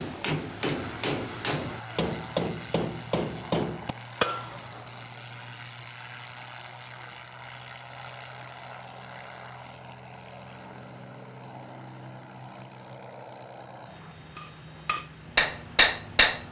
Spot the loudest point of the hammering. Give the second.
16 s.